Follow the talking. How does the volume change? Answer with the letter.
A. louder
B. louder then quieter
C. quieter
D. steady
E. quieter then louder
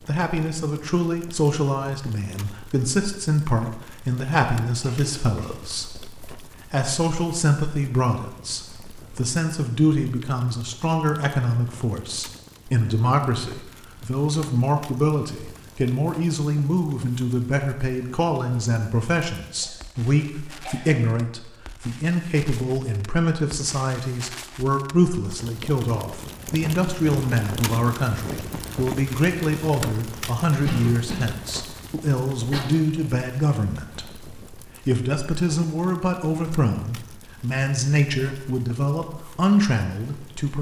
D.